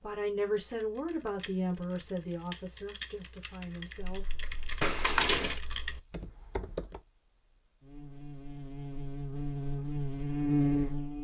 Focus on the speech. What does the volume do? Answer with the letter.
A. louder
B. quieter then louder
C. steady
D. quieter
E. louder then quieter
D.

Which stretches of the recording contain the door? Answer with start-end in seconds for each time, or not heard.
4.8-5.6.